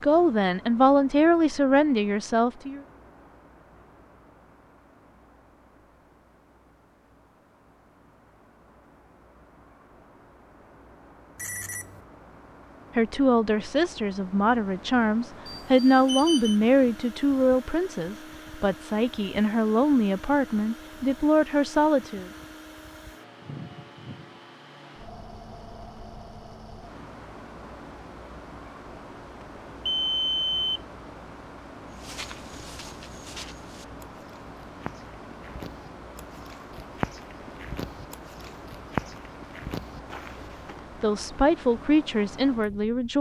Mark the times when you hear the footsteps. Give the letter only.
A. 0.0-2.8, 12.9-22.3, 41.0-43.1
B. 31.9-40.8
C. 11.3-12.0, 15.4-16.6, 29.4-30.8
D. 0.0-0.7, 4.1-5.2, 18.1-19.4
B.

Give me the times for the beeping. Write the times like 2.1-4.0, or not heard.
11.3-12.0, 15.4-16.6, 29.4-30.8.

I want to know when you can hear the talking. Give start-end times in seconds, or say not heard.
0.0-2.8, 12.9-22.3, 41.0-43.1.